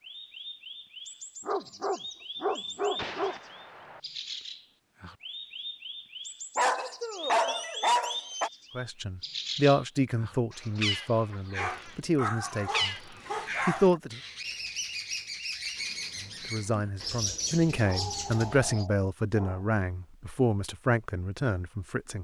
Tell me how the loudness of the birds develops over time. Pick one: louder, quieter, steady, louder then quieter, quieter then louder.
louder.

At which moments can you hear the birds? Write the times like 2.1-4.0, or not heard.
0.0-18.9.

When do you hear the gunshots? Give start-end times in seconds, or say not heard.
3.0-4.0.